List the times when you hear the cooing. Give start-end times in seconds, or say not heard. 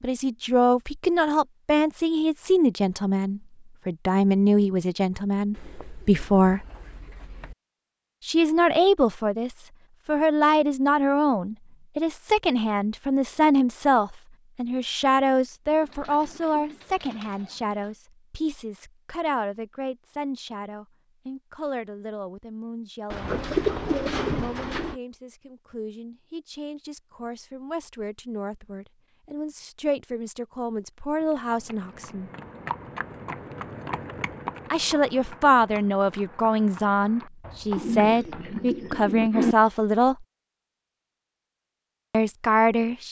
5.5-7.5, 15.7-17.9, 23.1-24.9, 37.8-39.5.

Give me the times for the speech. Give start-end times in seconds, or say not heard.
0.0-6.7, 8.2-23.4, 24.2-32.3, 34.7-40.2, 42.1-43.0.